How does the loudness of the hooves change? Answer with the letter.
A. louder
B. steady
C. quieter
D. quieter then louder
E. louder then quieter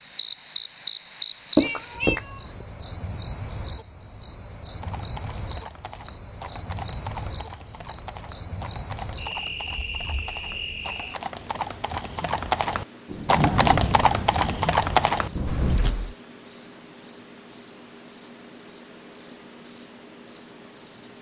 A.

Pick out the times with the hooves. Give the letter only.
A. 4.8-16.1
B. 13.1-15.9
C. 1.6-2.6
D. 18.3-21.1
A.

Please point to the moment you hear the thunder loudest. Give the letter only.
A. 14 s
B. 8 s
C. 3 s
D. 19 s
A.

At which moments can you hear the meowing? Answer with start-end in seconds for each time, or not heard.
1.6-2.6.